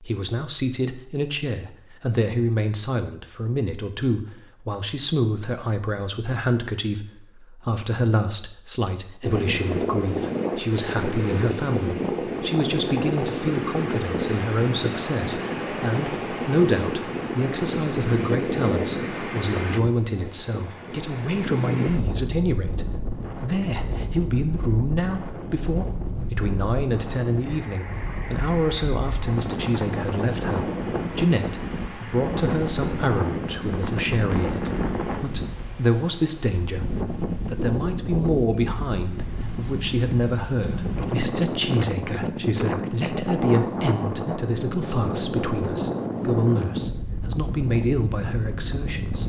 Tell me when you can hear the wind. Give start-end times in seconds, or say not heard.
9.2-49.2.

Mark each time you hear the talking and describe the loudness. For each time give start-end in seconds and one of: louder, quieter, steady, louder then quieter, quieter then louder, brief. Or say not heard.
0.0-49.2 steady.